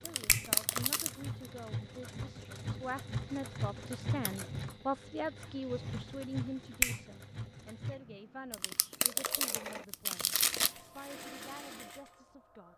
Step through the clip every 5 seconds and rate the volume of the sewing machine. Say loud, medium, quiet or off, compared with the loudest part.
loud, loud, medium.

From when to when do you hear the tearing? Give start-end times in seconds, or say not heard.
0.1-1.2, 8.5-10.8.